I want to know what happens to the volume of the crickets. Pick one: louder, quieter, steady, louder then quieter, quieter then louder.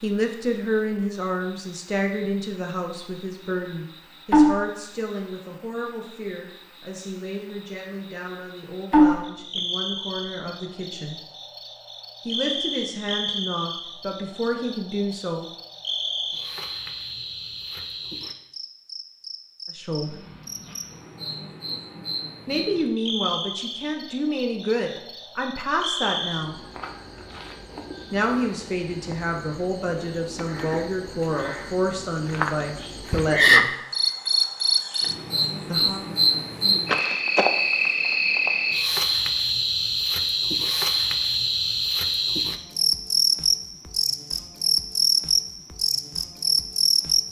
quieter then louder.